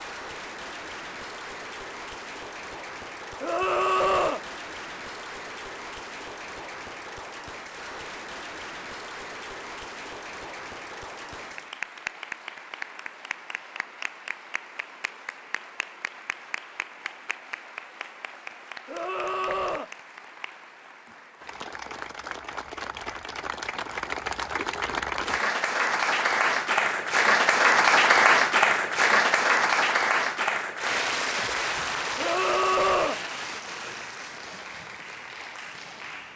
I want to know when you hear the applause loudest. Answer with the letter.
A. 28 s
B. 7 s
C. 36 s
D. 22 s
A.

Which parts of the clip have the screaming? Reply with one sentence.
You can hear the screaming from 3.4 to 4.5 s, from 18.9 to 19.9 s and from 32.1 to 33.2 s.